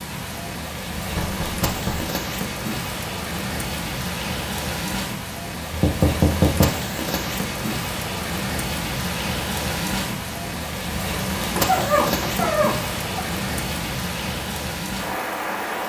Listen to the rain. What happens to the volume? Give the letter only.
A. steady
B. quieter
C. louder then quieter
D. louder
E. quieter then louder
A.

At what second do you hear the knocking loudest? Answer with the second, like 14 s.
6 s.